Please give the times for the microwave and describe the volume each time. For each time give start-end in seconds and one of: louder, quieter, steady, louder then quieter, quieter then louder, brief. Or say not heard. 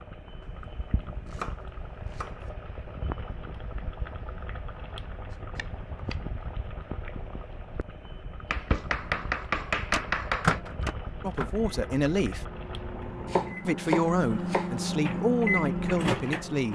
9.9-16.6 quieter then louder.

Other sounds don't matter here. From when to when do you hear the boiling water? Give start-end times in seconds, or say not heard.
0.0-13.2.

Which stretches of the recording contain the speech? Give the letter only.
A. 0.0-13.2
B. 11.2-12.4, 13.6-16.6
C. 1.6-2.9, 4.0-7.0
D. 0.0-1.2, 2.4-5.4
B.